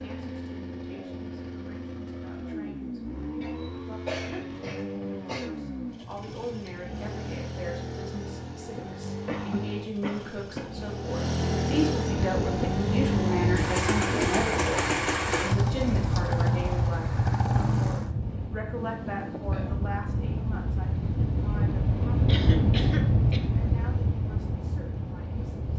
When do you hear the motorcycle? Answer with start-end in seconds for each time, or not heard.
0.0-18.1.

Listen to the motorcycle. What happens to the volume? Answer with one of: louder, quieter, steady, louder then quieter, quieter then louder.
louder.